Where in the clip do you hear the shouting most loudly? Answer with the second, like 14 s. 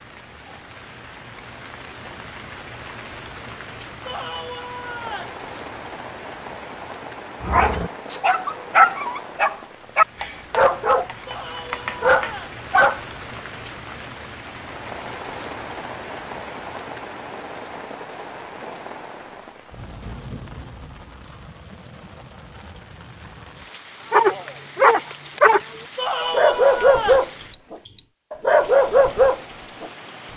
26 s.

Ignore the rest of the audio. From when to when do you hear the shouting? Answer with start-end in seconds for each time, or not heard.
4.0-5.4, 11.2-12.6, 25.9-27.3.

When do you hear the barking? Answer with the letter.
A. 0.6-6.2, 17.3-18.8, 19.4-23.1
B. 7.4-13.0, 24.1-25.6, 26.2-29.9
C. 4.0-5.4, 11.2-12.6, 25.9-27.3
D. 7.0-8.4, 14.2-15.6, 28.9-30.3
B.